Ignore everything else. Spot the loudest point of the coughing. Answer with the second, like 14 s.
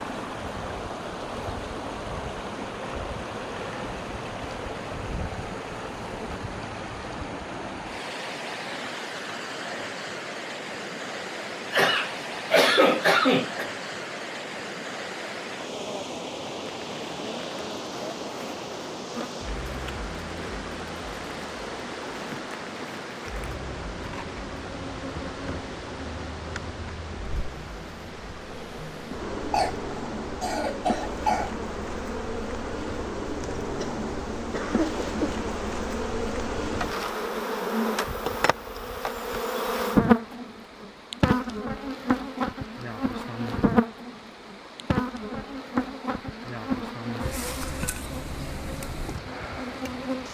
13 s.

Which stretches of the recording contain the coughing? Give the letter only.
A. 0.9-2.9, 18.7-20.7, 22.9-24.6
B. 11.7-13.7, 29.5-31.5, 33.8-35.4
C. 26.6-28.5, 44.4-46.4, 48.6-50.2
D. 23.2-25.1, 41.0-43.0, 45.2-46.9
B.